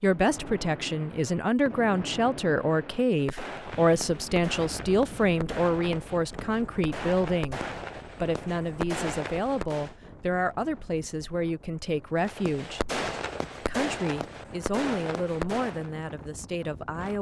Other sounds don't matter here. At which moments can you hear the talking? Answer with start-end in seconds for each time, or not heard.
0.0-12.8, 13.6-17.1.